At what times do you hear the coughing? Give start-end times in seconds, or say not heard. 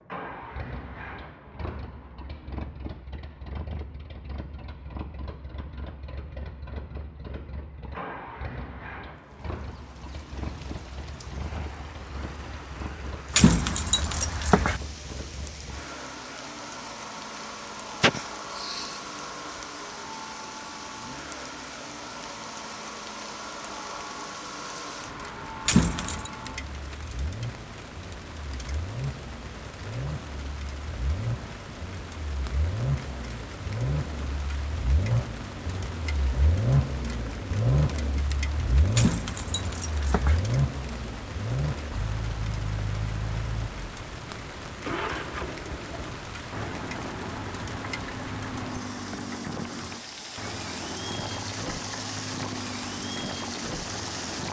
18.0-19.0.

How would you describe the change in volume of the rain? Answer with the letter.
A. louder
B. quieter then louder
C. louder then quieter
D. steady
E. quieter
A.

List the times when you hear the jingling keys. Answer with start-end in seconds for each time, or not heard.
13.3-14.8, 25.6-26.3, 39.0-40.4.